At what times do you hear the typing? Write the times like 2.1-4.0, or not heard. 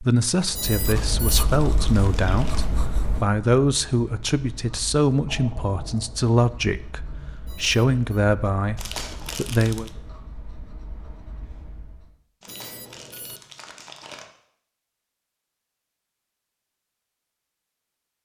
not heard.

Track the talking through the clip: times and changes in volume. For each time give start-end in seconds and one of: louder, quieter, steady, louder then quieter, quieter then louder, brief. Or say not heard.
0.0-9.9 steady.